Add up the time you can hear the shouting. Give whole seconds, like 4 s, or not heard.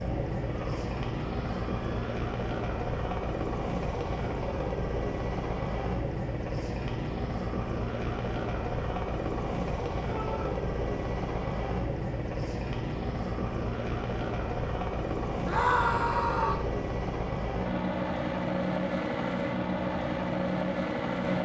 3 s.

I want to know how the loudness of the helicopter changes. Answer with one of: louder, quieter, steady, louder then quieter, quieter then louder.
steady.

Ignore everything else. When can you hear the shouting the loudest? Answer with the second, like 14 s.
16 s.